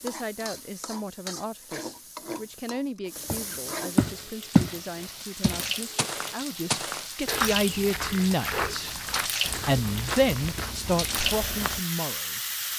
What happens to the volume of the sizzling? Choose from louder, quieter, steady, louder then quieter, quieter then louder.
louder.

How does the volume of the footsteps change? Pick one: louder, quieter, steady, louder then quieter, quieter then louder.
quieter.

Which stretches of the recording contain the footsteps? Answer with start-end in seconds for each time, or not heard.
3.2-11.8.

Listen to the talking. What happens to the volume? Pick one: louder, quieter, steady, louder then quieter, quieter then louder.
louder.